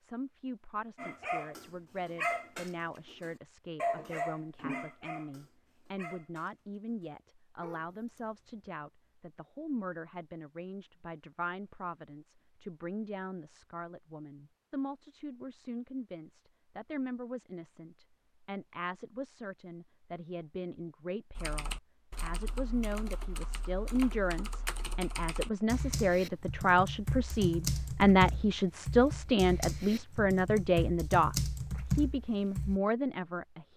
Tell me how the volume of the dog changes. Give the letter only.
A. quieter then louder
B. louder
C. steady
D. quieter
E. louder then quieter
D.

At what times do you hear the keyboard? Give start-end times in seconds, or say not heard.
21.4-32.8.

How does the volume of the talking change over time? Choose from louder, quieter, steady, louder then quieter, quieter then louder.
louder.